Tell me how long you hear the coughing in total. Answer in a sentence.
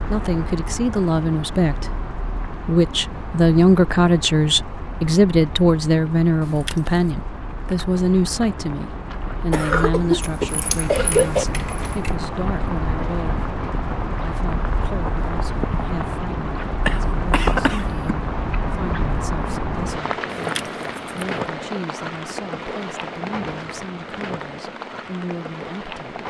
The coughing can be heard for 3 seconds in total.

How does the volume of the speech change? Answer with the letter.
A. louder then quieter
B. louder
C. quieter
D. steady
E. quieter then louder
C.